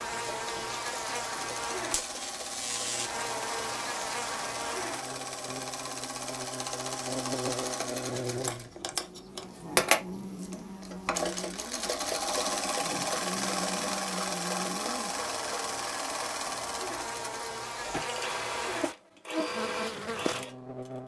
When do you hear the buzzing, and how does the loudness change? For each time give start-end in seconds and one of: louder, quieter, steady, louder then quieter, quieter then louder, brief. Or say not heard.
0.0-21.0 quieter then louder.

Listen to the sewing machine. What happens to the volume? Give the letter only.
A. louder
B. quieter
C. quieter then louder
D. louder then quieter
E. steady
D.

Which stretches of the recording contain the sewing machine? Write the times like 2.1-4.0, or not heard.
0.0-21.0.